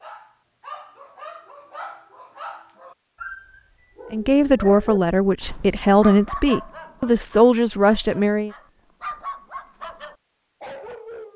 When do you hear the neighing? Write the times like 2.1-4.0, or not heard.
not heard.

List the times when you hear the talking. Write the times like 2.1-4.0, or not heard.
4.1-8.5.